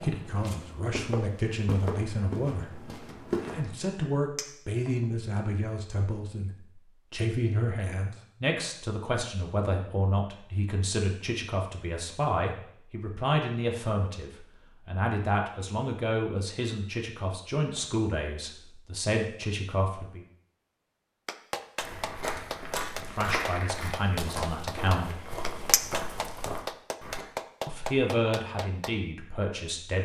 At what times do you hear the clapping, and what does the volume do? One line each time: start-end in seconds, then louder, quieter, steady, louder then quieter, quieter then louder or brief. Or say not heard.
21.2-28.9 steady.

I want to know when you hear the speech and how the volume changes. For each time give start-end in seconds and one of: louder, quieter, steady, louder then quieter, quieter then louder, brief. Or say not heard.
0.0-20.2 steady
22.9-25.2 brief
27.6-30.0 brief.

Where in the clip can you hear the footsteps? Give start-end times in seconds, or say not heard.
0.0-3.6, 21.8-27.2.